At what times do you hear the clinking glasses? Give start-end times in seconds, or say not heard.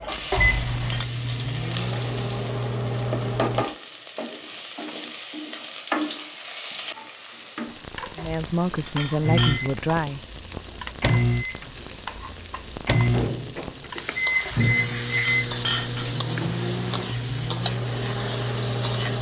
0.3-1.1, 8.2-9.8, 14.4-16.1.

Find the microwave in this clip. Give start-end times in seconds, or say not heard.
0.0-3.7, 9.2-19.1.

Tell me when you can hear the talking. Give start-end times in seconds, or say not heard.
8.2-10.2.